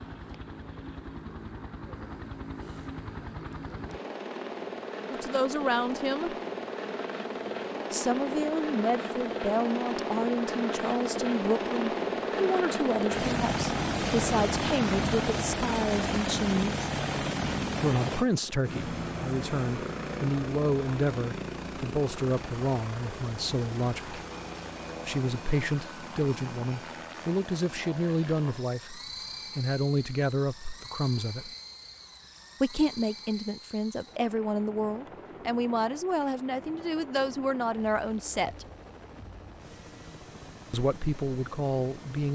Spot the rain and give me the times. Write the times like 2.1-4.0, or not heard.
not heard.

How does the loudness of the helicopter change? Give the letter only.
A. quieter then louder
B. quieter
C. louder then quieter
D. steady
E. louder
C.